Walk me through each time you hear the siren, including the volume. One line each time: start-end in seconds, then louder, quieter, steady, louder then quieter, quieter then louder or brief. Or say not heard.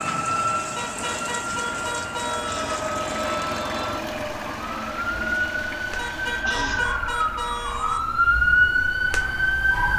0.0-9.9 louder.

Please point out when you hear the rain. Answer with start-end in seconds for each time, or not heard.
0.0-6.5.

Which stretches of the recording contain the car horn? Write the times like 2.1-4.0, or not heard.
0.8-2.6, 6.0-8.0.